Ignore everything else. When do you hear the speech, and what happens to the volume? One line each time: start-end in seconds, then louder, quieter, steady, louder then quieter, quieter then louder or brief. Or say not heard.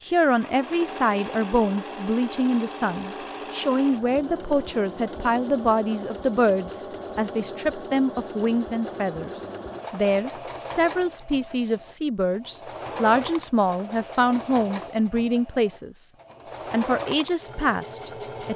0.0-16.1 steady
16.7-18.5 brief.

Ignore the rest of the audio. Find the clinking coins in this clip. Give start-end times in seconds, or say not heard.
not heard.